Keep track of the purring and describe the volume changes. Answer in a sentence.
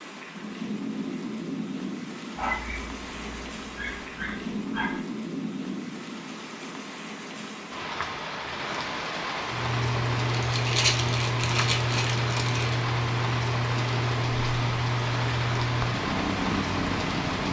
The volume of the purring stays about the same.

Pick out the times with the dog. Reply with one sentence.
The dog can be heard from 2.4 to 5.0 s.